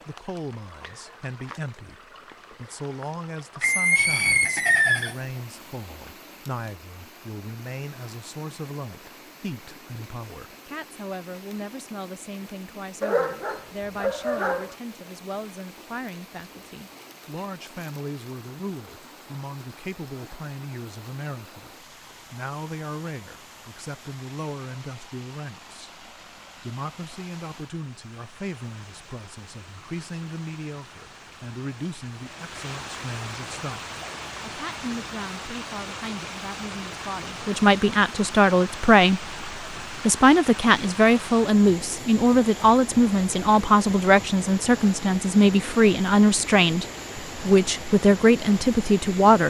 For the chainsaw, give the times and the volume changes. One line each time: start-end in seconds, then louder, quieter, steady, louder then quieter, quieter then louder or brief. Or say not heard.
not heard.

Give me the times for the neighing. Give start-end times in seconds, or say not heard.
3.6-5.2.